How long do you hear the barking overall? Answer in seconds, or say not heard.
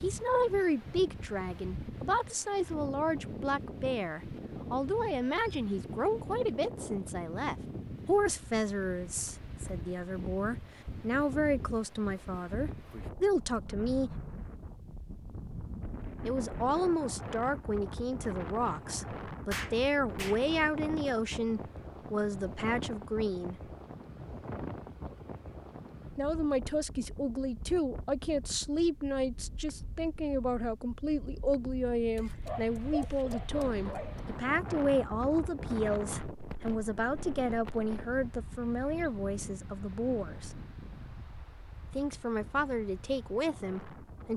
2 s.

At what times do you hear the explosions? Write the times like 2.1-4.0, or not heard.
19.5-20.4.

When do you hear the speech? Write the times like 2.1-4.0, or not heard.
0.0-14.1, 16.2-23.6, 26.1-40.5, 41.9-44.3.